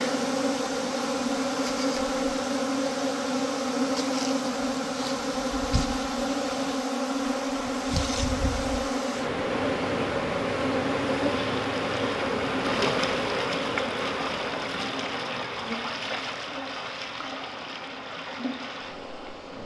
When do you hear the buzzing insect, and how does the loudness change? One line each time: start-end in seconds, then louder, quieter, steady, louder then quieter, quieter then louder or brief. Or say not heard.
0.0-19.6 quieter.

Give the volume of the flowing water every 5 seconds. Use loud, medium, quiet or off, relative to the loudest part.
medium, medium, loud, loud.